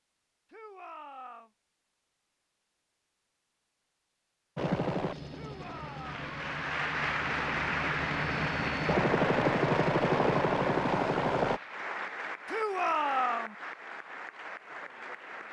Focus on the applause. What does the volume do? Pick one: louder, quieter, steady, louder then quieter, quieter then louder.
quieter.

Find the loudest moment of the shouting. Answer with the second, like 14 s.
13 s.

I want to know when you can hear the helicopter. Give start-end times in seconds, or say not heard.
4.5-11.6.